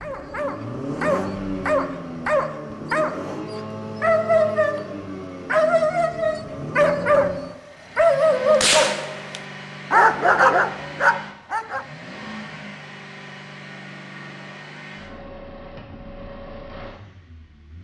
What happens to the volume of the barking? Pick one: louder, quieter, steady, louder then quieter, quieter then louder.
louder.